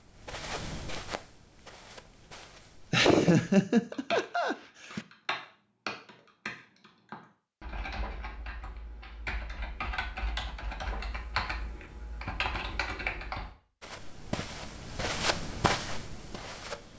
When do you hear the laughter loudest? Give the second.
3 s.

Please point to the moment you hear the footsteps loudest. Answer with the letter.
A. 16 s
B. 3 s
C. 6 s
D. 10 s
A.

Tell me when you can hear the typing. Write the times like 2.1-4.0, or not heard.
3.9-13.6.